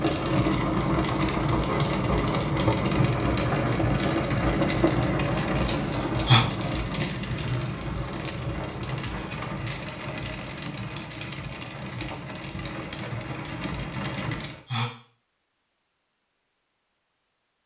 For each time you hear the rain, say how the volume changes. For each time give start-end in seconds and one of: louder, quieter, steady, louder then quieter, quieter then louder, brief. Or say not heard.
0.0-14.6 quieter.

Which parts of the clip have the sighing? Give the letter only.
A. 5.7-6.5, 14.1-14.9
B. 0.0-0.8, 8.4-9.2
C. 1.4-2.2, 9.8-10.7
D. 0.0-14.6
A.